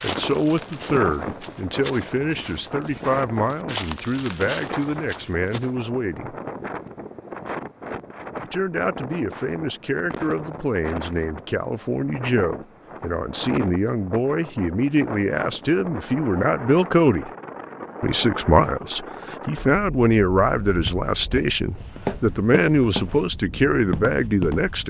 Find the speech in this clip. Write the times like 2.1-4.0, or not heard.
0.0-6.3, 8.4-17.3, 18.0-24.8.